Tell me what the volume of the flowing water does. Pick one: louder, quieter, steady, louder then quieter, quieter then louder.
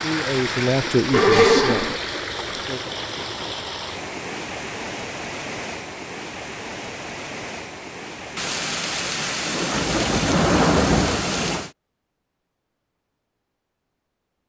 quieter.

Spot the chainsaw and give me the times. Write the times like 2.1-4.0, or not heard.
not heard.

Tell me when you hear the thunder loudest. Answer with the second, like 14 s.
11 s.